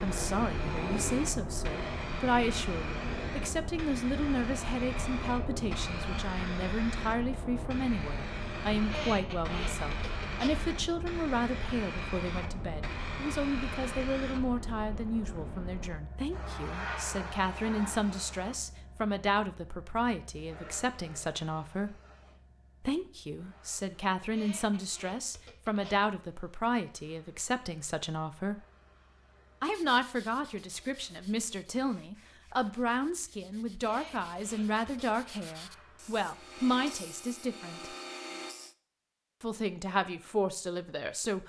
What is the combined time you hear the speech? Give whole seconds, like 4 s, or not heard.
38 s.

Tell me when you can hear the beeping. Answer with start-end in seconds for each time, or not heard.
not heard.